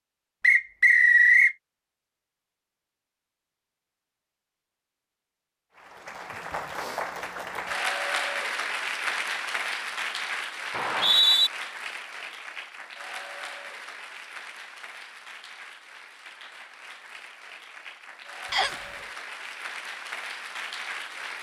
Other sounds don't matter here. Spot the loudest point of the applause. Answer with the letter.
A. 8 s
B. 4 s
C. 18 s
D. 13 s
A.